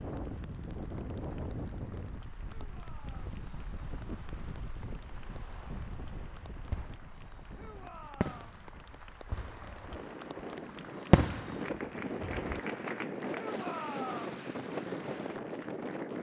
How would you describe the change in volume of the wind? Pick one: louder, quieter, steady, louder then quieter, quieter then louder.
quieter then louder.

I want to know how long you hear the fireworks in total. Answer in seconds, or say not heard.
4 s.